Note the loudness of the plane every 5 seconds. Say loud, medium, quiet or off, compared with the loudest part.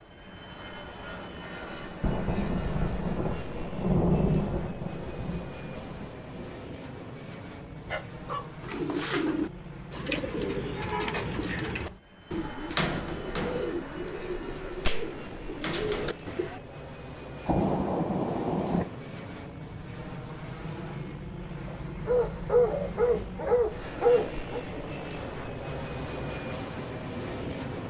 medium, medium, medium, medium, loud, loud.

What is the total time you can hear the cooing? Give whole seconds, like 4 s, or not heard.
8 s.